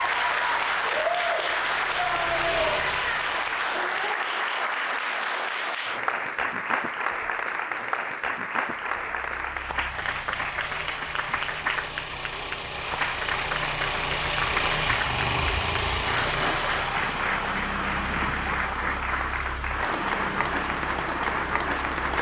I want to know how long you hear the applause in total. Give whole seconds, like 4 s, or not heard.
22 s.